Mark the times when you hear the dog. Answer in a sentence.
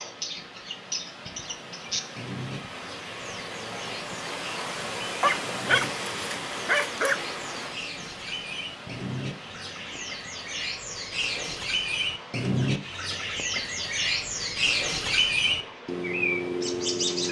The dog can be heard from 5.2 to 7.2 s.